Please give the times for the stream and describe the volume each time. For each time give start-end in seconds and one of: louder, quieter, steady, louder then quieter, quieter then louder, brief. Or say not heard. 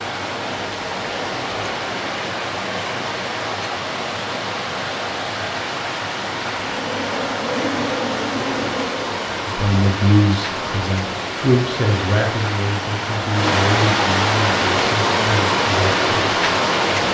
0.0-17.0 louder.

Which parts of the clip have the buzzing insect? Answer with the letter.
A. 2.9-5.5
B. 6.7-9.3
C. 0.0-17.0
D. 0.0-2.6
B.